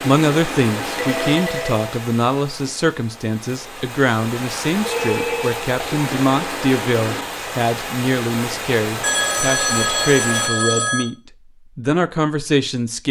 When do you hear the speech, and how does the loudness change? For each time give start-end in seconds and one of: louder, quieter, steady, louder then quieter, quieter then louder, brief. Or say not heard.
0.0-11.2 steady
11.8-13.0 brief.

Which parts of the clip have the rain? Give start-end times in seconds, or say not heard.
0.0-10.5.